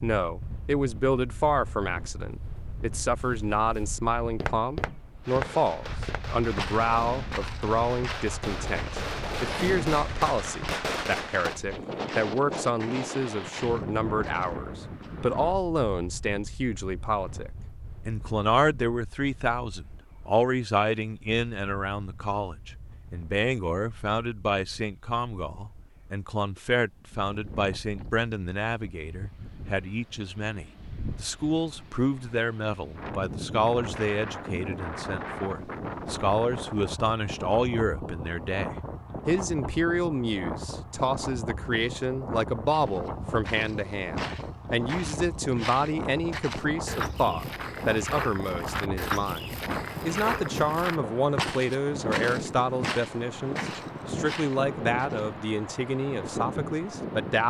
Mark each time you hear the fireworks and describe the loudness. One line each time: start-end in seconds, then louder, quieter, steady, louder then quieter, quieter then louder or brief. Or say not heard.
5.2-11.6 louder.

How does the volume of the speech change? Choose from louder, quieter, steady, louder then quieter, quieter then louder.
steady.